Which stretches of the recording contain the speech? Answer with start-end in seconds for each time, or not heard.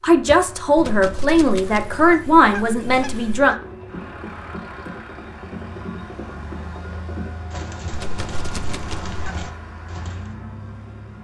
0.0-3.5.